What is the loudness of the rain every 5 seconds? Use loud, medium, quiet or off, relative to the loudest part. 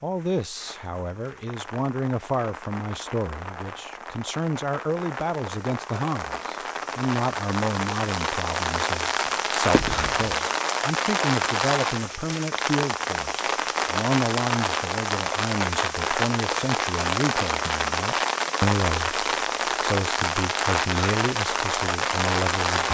quiet, loud, loud, loud, loud.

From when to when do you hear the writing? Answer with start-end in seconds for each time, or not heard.
9.7-10.3.